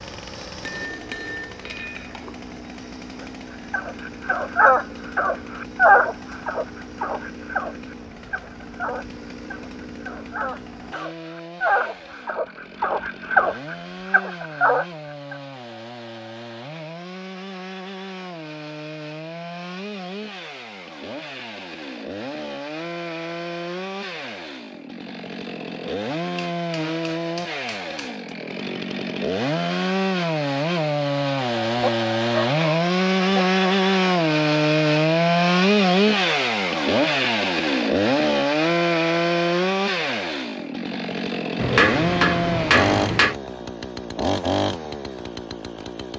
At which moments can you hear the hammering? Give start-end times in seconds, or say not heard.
0.6-2.4, 26.4-28.3, 41.5-43.4.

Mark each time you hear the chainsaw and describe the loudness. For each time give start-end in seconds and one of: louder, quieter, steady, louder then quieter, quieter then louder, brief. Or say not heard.
0.0-46.1 louder.